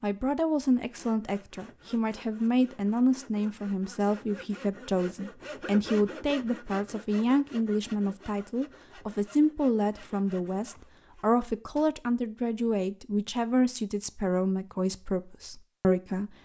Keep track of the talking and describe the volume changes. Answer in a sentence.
The volume of the talking stays about the same.